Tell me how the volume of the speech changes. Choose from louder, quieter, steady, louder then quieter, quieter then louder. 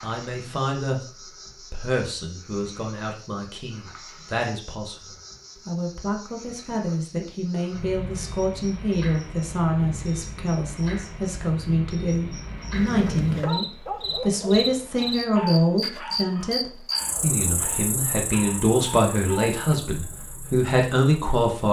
louder.